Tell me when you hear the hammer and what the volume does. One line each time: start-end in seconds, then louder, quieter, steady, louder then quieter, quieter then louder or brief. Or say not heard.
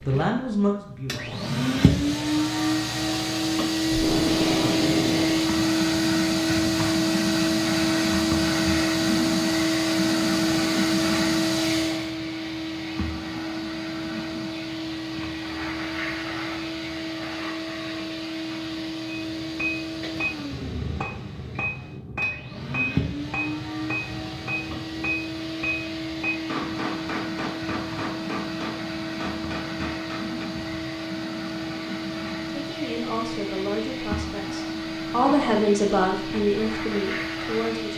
19.1-30.9 steady.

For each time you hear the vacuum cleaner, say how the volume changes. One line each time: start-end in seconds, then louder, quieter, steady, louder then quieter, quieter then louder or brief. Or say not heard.
0.0-37.9 quieter.